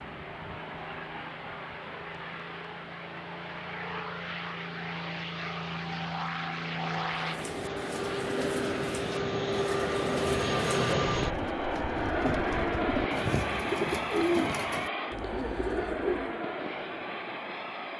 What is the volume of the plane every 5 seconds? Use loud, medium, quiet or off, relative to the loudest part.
medium, loud, loud, medium.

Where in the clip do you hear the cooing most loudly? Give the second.
14 s.